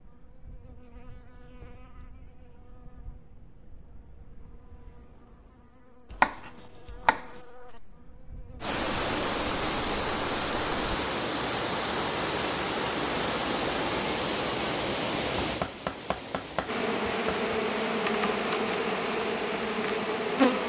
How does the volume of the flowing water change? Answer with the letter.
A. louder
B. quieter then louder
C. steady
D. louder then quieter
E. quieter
E.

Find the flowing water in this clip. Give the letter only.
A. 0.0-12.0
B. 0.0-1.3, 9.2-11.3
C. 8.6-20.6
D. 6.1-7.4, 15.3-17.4
C.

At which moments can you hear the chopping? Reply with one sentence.
You can hear the chopping from 6.1 to 7.4 s and from 15.3 to 17.4 s.